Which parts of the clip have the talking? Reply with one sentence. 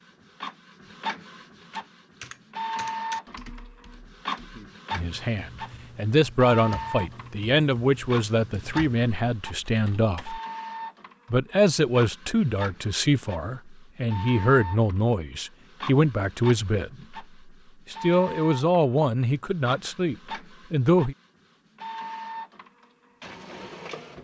The talking can be heard from 4.9 to 10.4 s, from 11.3 to 17.2 s and from 17.9 to 21.1 s.